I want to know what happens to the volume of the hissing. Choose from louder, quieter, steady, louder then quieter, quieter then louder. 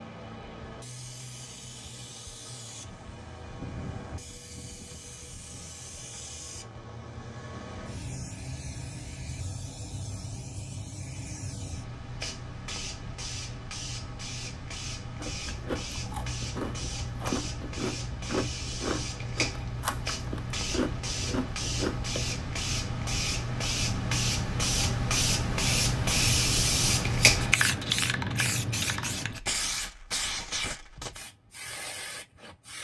louder.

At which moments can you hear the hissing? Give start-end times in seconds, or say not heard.
0.0-32.7.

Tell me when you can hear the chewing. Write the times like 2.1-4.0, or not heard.
15.2-22.4.